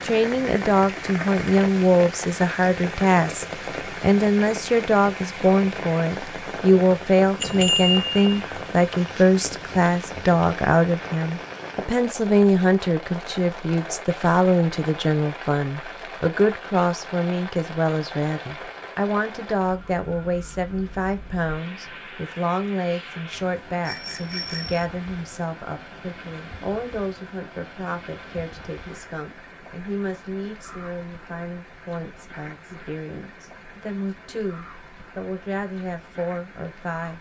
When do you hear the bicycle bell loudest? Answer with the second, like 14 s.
8 s.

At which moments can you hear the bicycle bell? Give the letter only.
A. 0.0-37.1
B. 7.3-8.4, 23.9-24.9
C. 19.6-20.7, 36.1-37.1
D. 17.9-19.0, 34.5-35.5
B.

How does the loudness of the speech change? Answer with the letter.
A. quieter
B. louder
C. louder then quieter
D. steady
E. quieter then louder
A.